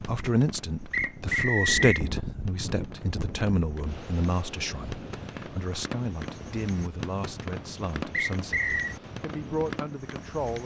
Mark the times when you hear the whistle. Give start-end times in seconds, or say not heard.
0.9-2.0, 8.1-8.9.